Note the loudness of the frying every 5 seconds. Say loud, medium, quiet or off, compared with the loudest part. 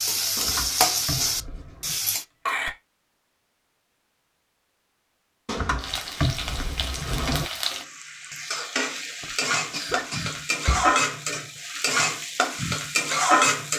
loud, medium, loud.